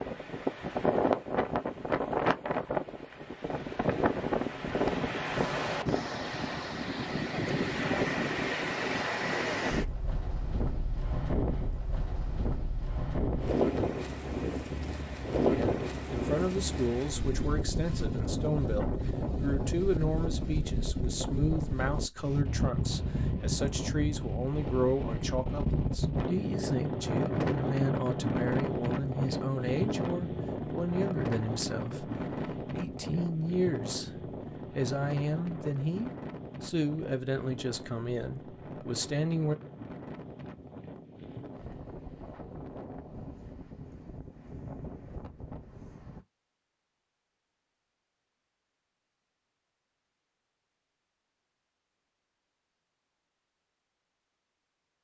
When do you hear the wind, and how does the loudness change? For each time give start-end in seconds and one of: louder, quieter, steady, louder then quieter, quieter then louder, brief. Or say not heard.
0.0-46.2 quieter.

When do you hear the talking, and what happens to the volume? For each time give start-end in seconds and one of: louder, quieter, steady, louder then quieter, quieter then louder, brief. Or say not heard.
15.5-39.5 steady.